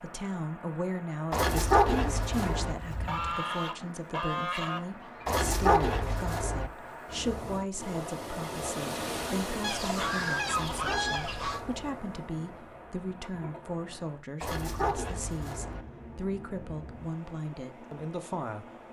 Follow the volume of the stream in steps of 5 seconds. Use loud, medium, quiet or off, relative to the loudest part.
medium, loud, medium, medium.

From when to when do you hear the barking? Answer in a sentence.
You can hear the barking from 1.3 to 2.8 s, from 5.2 to 6.7 s, from 10.4 to 11.9 s and from 14.4 to 15.8 s.